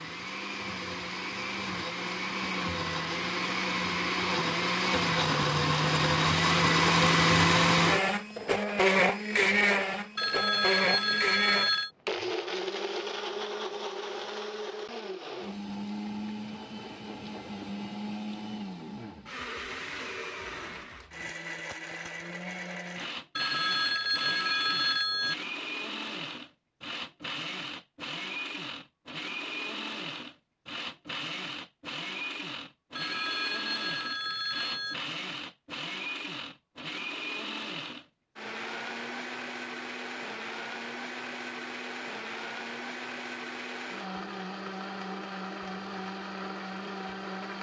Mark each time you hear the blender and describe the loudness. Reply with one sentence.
The blender can be heard from 0.0 to 47.5 s, getting quieter.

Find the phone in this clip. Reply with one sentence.
The phone can be heard from 10.2 to 11.9 s, from 23.4 to 25.4 s and from 33.0 to 35.0 s.